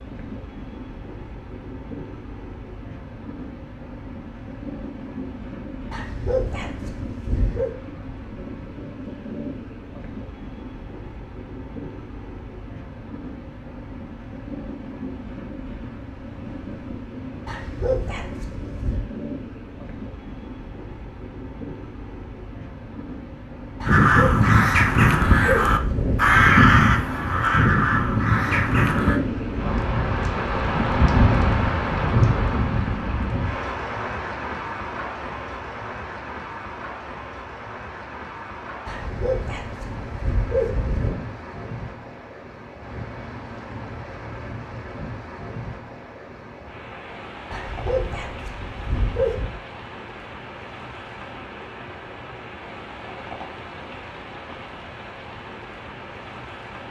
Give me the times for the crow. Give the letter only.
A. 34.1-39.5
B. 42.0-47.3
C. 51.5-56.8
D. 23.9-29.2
D.